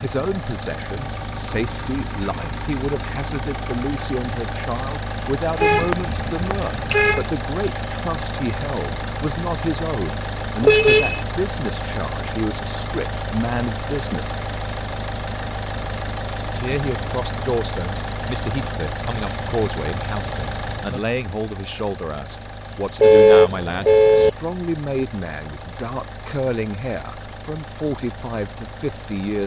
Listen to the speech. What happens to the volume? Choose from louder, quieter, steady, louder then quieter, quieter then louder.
steady.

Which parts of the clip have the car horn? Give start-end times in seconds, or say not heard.
5.5-7.3, 10.6-11.2, 23.0-24.3.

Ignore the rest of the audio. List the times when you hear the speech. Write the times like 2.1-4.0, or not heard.
0.0-14.3, 16.6-29.4.